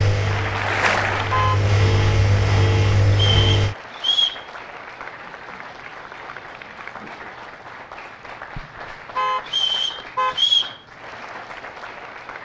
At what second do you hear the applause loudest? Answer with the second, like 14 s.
1 s.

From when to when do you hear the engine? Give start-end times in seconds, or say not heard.
0.0-3.8.